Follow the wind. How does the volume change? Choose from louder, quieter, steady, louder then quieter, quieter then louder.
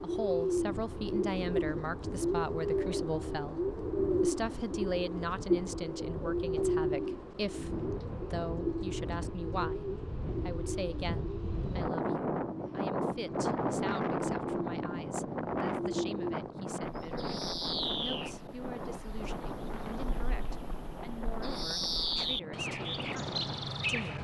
louder then quieter.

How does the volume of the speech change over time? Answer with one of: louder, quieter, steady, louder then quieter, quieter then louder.
quieter.